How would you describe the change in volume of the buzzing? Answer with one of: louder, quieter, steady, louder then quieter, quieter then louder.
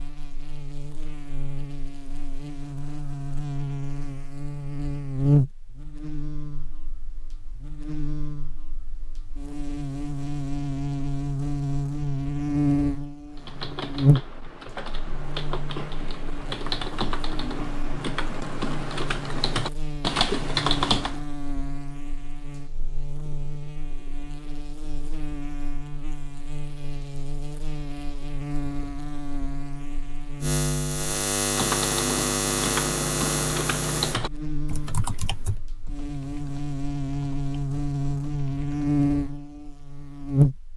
quieter then louder.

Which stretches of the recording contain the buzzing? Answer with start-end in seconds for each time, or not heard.
0.0-40.7.